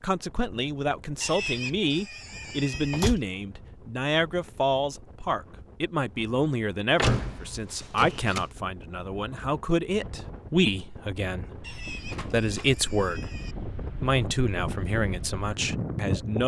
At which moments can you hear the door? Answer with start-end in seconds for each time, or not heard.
2.7-3.2, 7.0-8.4, 12.1-12.8.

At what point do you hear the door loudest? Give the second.
7 s.